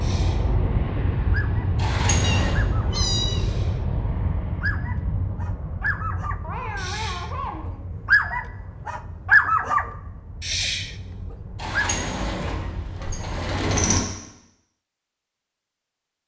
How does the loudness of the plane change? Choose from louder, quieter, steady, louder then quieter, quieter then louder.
quieter.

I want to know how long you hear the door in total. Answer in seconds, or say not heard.
3 s.